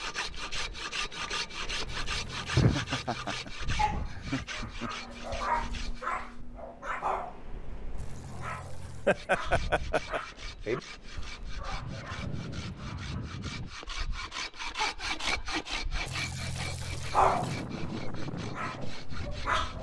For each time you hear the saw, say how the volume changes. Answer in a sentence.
The saw can be heard from 0.0 to 6.0 s, getting quieter; and from 9.1 to 19.7 s, getting louder then quieter.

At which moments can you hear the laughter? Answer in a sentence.
The laughter can be heard from 2.5 to 4.9 s, from 8.8 to 10.2 s and from 14.8 to 15.7 s.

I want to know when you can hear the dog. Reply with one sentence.
The dog can be heard from 3.8 to 13.7 s and from 17.1 to 19.7 s.